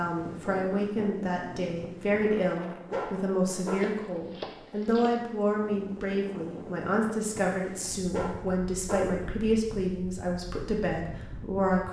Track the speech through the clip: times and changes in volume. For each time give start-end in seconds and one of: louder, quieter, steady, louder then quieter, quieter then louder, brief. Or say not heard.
0.0-11.8 steady.